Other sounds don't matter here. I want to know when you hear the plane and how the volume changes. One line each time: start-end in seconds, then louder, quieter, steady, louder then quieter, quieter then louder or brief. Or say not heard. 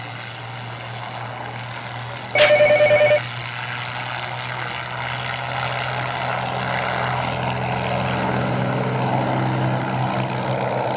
0.0-10.9 louder.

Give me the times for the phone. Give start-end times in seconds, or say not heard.
2.4-3.2.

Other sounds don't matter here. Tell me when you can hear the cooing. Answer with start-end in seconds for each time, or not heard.
not heard.